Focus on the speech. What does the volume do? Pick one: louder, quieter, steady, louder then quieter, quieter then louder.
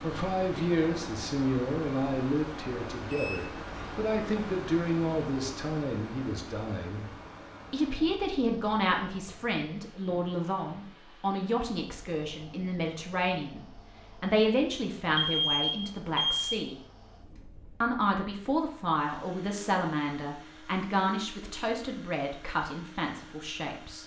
steady.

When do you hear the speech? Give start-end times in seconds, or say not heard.
0.0-7.0, 7.7-16.8, 17.8-24.0.